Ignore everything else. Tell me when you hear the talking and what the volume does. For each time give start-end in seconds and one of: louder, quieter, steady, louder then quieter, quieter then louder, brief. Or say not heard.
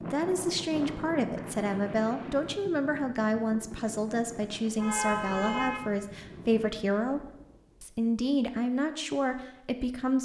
0.1-7.2 steady
7.8-10.1 brief.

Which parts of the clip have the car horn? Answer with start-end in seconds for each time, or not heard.
4.8-5.8.